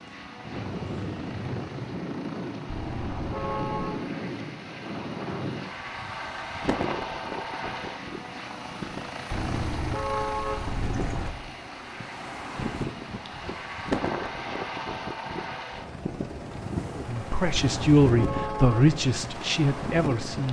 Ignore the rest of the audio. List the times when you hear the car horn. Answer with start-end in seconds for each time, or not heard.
2.6-4.0, 9.3-11.3, 17.6-18.9.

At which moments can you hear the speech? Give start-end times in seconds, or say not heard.
16.9-20.4.